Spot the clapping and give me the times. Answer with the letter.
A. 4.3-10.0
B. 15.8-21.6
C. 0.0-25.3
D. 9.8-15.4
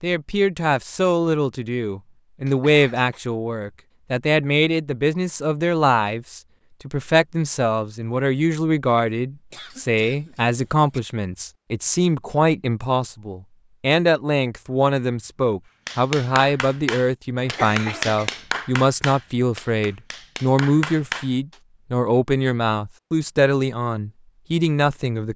B.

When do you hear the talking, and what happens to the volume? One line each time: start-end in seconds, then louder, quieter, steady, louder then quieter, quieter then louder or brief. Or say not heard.
0.0-25.3 steady.